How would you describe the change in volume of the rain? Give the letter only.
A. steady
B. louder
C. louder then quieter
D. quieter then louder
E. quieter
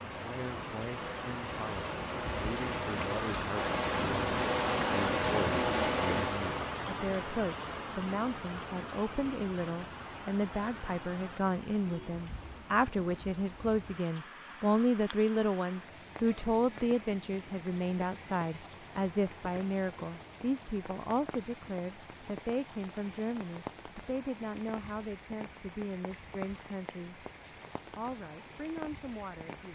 E.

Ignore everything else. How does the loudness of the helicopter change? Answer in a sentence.
The volume of the helicopter goes up.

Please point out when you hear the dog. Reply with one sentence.
The dog can't be heard in this clip.